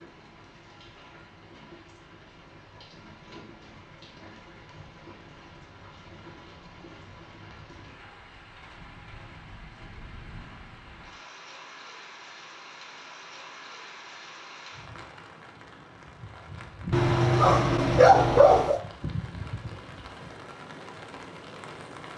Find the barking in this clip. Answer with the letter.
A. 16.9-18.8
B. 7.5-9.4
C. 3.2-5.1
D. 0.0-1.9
A.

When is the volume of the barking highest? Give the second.
18 s.